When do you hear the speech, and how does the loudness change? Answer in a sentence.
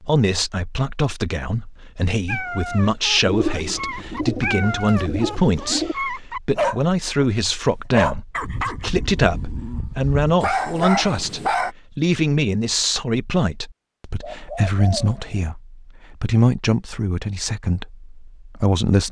The speech can be heard from 0.0 to 19.0 s, at a steady volume.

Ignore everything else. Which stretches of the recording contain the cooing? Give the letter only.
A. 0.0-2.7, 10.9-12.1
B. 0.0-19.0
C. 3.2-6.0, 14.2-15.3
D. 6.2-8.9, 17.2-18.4
C.